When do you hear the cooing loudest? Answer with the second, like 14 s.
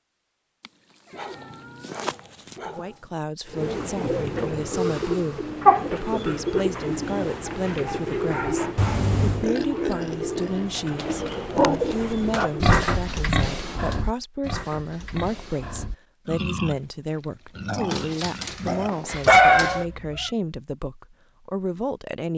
6 s.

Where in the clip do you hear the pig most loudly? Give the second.
13 s.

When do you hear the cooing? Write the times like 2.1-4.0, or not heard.
3.5-12.7.